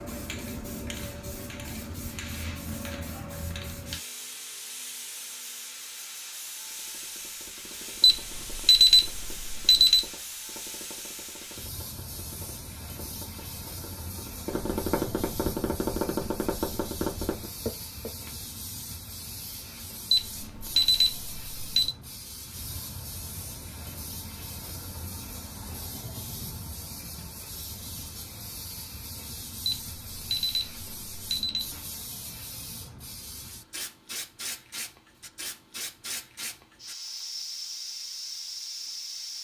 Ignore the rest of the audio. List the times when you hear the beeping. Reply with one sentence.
You can hear the beeping from 8.0 to 10.1 s, from 20.1 to 21.9 s and from 29.6 to 31.7 s.